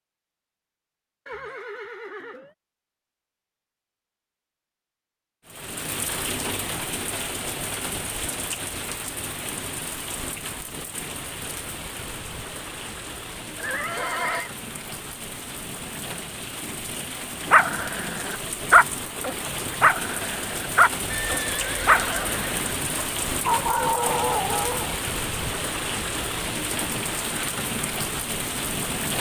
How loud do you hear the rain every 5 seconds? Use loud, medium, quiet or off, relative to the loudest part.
off, loud, medium, medium, loud, loud.